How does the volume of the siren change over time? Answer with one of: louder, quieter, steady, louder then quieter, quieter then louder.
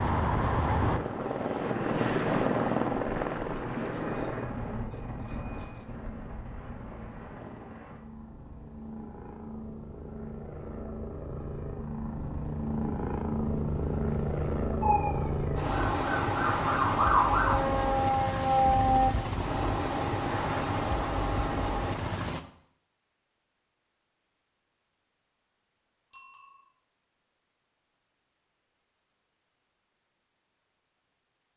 louder.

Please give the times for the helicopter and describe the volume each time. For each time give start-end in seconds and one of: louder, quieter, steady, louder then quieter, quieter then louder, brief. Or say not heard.
0.0-22.4 quieter then louder.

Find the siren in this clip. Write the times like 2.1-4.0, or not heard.
14.8-19.1.